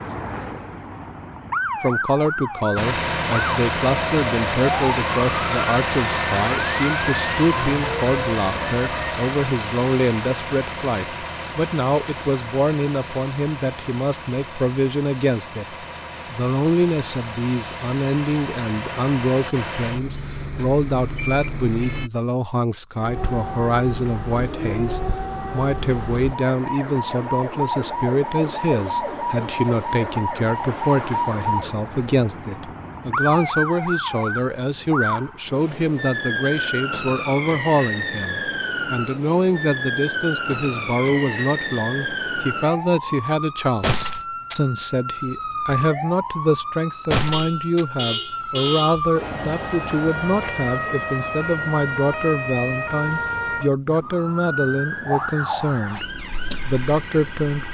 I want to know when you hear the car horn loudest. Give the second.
49 s.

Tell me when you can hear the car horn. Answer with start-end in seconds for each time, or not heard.
47.3-49.0.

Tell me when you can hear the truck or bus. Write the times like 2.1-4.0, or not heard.
2.8-22.1.